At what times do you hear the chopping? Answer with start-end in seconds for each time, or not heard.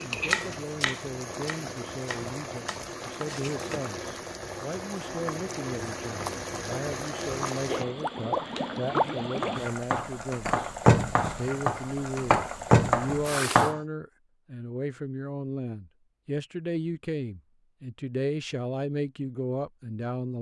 0.3-3.8, 9.4-13.8.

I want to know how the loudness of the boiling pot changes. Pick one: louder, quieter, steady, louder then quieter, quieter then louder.
louder.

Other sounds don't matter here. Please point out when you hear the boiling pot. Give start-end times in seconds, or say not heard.
0.0-13.7.